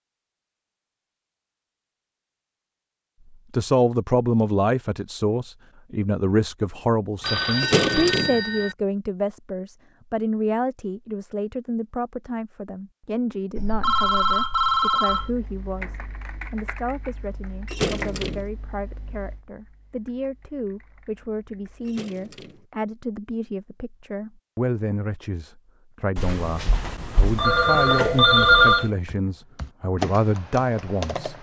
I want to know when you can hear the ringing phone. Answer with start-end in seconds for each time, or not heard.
7.2-8.8, 13.6-15.3, 26.1-28.9.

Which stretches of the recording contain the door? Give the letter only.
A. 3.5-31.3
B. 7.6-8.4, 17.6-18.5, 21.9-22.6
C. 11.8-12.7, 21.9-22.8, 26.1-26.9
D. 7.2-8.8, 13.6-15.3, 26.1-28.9
B.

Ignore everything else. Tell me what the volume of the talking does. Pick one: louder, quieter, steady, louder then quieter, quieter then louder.
quieter then louder.